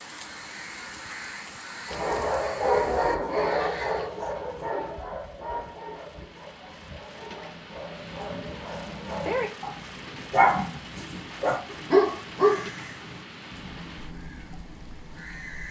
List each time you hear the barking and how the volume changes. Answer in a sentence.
You can hear the barking from 1.9 to 12.7 s, getting quieter then louder.